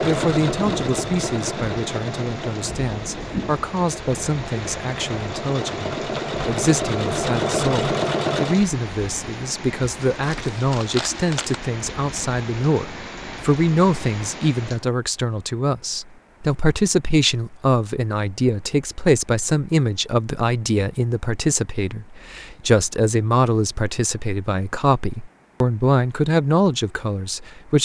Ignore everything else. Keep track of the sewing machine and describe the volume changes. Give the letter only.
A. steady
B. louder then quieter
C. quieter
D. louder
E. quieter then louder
E.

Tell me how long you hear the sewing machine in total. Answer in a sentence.
The sewing machine can be heard for 9 seconds in total.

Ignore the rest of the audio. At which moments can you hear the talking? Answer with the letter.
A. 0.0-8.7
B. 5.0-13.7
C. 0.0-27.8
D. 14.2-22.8
C.